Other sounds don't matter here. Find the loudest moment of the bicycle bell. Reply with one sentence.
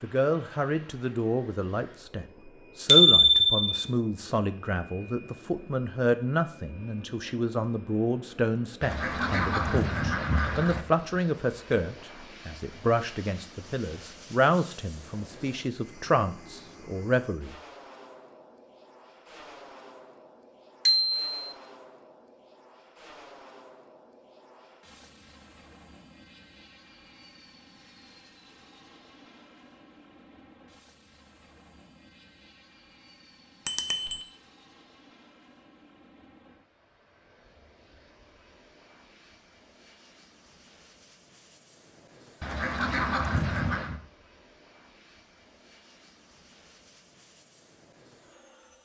The loudest moment of the bicycle bell is at 3 seconds.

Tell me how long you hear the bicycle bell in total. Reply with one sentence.
You can hear the bicycle bell for 2 seconds altogether.